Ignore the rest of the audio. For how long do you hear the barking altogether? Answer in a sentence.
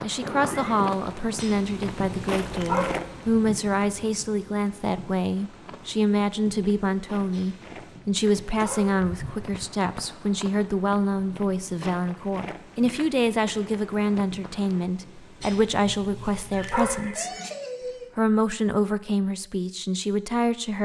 You can hear the barking for 5 seconds altogether.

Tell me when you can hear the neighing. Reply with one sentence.
You can hear the neighing from 0.2 to 0.9 s, from 8.6 to 9.7 s and from 16.7 to 18.1 s.